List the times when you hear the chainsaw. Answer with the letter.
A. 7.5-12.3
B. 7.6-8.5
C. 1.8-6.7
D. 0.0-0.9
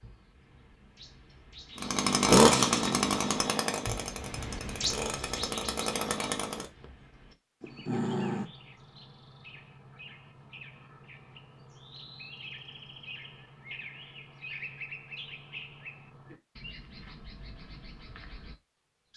C.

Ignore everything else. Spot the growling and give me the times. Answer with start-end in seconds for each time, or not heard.
7.6-8.5.